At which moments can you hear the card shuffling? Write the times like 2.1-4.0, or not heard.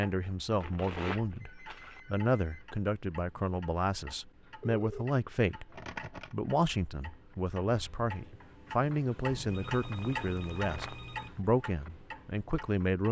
0.0-2.0, 5.7-6.3, 9.8-11.4.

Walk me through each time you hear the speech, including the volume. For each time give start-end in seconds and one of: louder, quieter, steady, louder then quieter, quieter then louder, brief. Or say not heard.
0.0-13.0 steady.